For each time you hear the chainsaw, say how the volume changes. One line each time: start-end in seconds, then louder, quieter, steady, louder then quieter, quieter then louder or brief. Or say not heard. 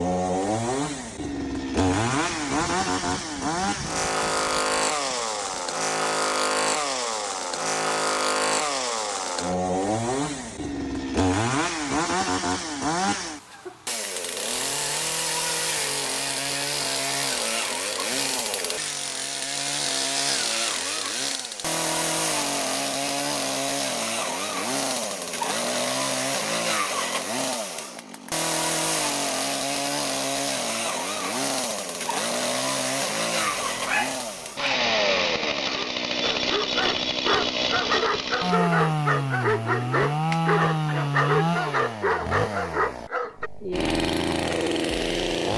0.0-45.5 steady.